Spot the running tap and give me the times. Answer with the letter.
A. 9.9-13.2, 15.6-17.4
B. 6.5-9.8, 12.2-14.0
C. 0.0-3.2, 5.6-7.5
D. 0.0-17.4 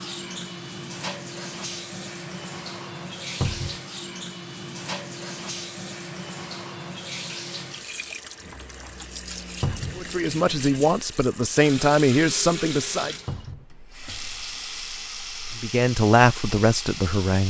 D.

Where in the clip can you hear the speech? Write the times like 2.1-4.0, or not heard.
9.9-13.2, 15.6-17.4.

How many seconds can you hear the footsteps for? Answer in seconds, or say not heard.
not heard.